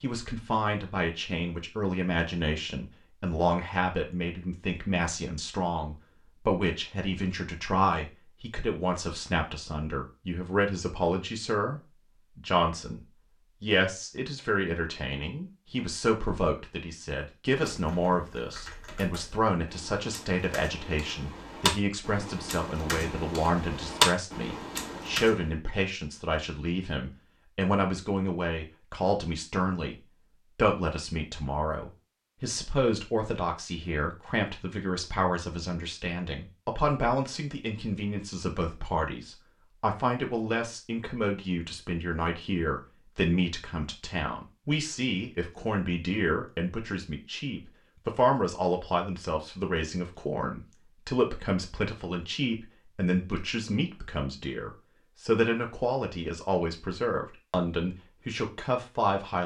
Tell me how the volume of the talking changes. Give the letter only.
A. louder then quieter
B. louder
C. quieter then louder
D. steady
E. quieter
D.